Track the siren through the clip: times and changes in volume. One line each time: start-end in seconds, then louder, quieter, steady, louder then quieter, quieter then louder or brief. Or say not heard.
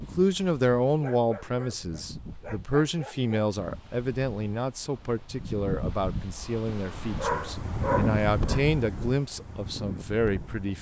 not heard.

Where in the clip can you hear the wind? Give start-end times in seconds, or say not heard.
0.0-10.7.